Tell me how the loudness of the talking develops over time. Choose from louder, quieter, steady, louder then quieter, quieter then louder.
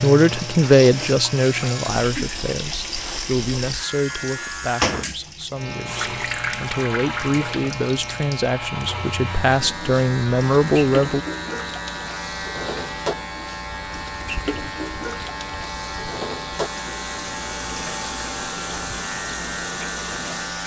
quieter then louder.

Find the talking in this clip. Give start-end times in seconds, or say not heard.
0.0-11.2.